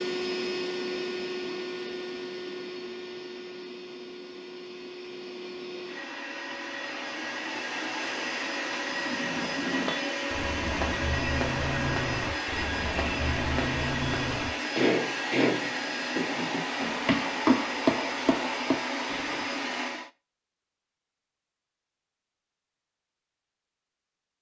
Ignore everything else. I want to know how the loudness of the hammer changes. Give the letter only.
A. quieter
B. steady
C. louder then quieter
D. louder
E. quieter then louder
D.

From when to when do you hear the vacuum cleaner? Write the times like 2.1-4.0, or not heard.
0.0-20.1.